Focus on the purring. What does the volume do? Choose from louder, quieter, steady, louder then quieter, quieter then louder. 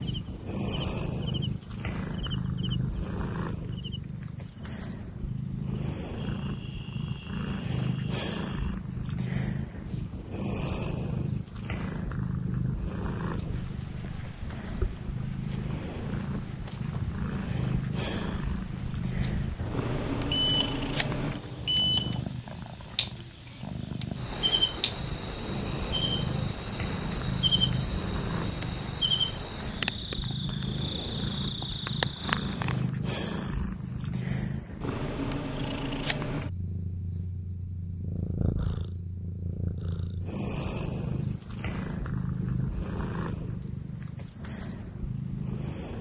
steady.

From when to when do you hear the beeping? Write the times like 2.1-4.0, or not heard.
19.6-22.2.